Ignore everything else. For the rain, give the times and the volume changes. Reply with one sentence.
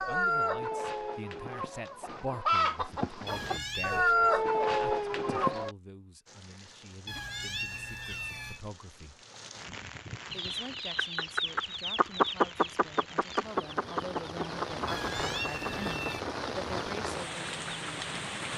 You can hear the rain from 6.2 to 18.5 s, getting louder.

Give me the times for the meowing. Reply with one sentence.
The meowing can be heard from 3.2 to 4.1 s, from 7.0 to 8.6 s and from 14.8 to 16.2 s.